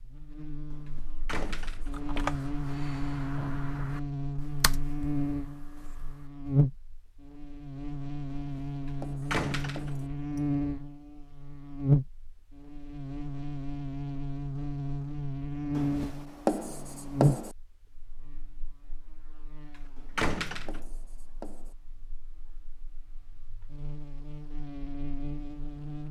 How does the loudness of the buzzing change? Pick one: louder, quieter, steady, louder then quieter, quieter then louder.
quieter.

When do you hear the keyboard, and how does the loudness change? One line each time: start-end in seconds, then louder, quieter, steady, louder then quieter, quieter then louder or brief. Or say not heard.
1.8-6.3 quieter.